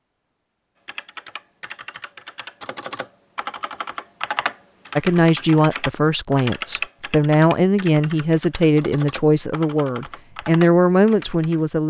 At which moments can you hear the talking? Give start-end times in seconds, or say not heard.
5.0-11.8.